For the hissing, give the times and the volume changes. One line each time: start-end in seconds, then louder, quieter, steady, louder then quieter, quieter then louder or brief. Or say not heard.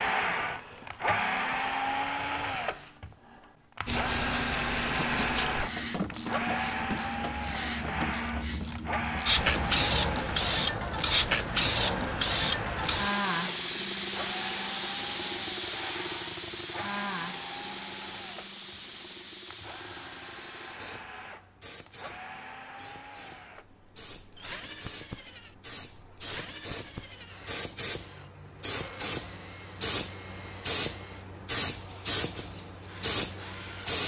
3.9-34.0 quieter then louder.